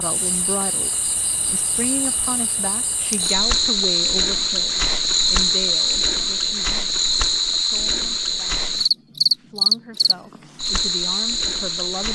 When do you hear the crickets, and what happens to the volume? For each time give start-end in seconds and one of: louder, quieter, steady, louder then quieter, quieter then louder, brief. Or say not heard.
0.0-12.1 louder.